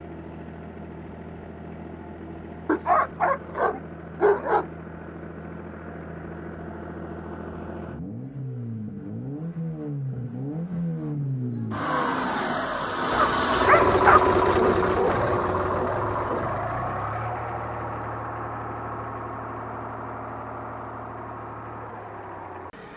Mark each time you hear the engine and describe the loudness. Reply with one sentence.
You can hear the engine from 0.0 to 22.9 s, getting louder then quieter.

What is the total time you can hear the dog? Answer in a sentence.
You can hear the dog for 3 seconds altogether.